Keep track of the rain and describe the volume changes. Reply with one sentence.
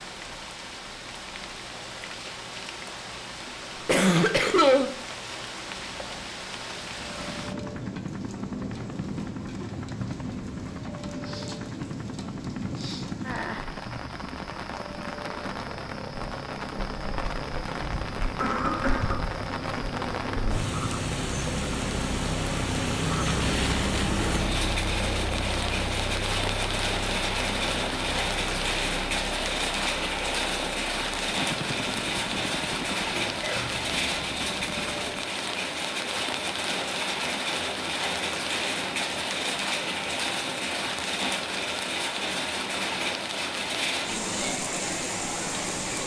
The loudness of the rain goes up.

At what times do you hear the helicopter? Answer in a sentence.
The helicopter can be heard from 6.8 to 35.3 s.